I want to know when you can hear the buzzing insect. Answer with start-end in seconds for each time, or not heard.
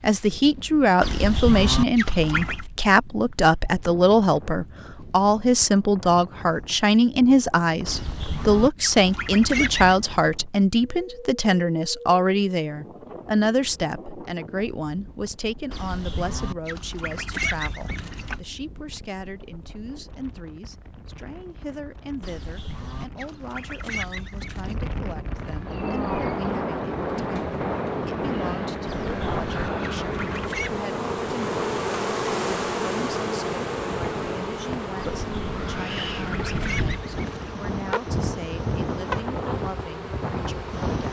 25.3-41.0.